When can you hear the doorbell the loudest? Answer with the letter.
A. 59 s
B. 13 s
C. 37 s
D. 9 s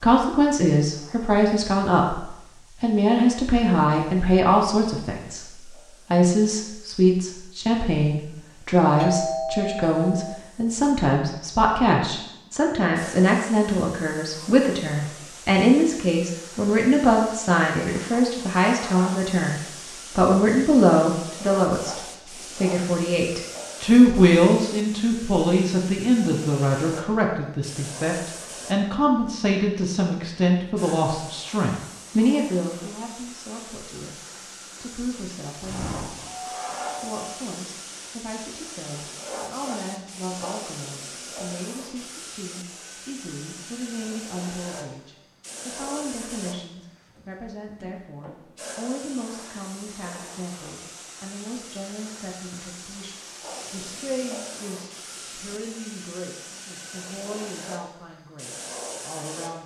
D.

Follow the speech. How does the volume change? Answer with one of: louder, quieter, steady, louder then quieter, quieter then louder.
quieter.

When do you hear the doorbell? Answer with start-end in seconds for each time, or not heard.
8.9-10.4, 35.6-37.3.